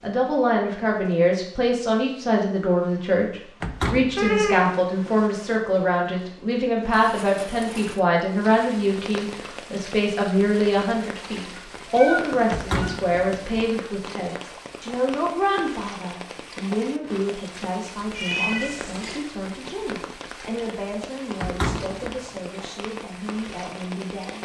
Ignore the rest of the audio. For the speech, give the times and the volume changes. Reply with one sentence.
You can hear the speech from 0.0 to 24.4 s, getting quieter.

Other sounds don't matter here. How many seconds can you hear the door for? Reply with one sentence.
You can hear the door for 3 seconds altogether.